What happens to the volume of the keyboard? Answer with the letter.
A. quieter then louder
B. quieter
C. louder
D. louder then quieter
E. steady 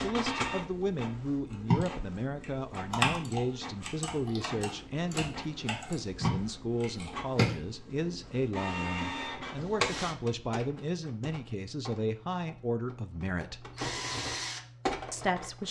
A.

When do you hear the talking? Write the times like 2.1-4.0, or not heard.
0.0-13.7, 15.1-15.6.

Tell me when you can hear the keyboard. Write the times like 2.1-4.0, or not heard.
1.6-7.6.